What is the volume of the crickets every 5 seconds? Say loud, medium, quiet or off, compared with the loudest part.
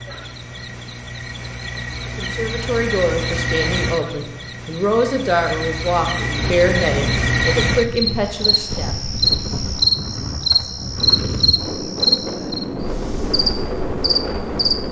medium, loud, loud.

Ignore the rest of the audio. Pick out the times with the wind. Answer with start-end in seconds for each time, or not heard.
6.3-14.8.